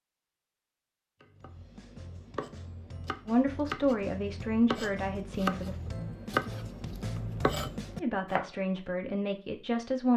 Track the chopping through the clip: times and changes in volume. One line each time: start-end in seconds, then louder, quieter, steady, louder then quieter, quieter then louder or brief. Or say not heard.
1.2-8.5 louder.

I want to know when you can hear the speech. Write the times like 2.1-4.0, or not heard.
3.2-5.8, 8.0-10.1.